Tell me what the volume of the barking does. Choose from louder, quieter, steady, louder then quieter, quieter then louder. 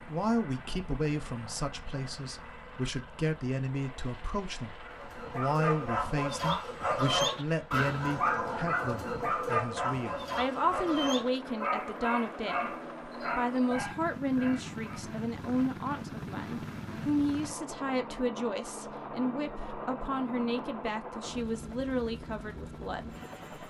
quieter.